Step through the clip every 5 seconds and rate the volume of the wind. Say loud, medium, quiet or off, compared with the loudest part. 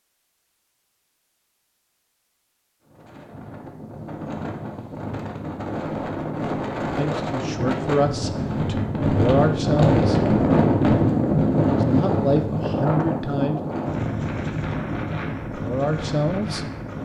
quiet, loud, loud, medium.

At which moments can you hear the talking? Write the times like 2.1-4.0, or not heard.
7.0-10.2, 11.7-13.6, 15.5-16.6.